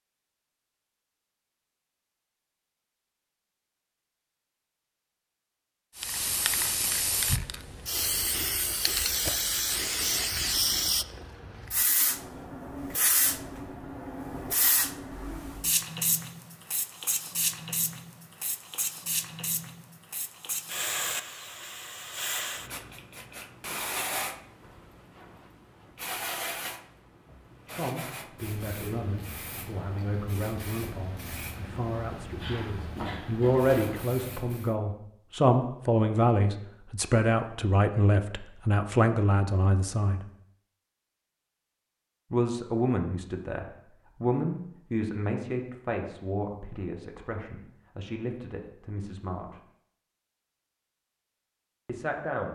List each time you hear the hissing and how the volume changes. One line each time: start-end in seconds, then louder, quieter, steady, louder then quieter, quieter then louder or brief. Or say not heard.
6.0-34.8 quieter.